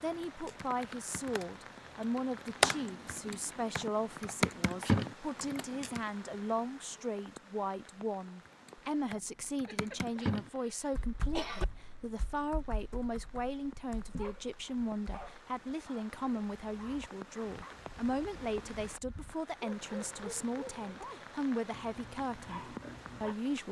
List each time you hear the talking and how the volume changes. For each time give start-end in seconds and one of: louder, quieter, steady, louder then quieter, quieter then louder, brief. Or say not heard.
0.0-23.6 steady.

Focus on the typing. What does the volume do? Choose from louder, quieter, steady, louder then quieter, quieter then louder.
louder then quieter.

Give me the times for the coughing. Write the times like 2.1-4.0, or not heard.
9.7-11.7.